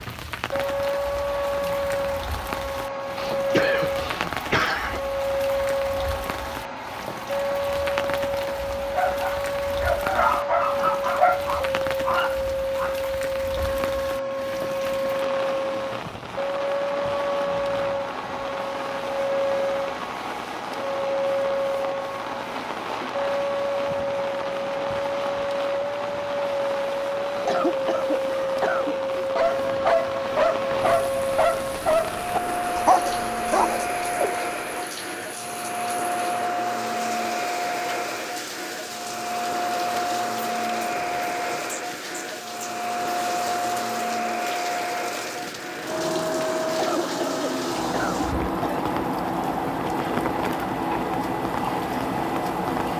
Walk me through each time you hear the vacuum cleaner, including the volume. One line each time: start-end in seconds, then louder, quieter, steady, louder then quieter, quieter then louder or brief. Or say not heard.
0.0-52.9 steady.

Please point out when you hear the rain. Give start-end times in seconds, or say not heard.
0.0-52.9.